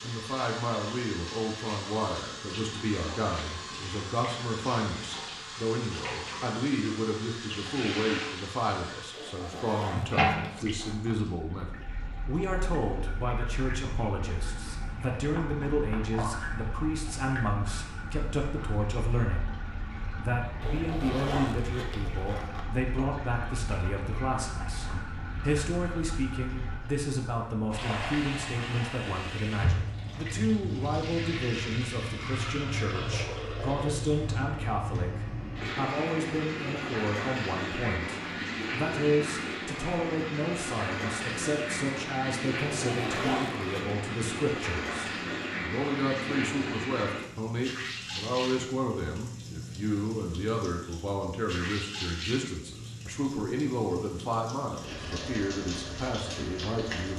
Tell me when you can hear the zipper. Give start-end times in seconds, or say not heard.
9.1-11.2, 20.6-22.6, 42.5-44.0.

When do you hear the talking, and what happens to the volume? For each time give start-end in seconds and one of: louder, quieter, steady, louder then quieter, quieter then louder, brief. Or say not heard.
0.0-57.1 steady.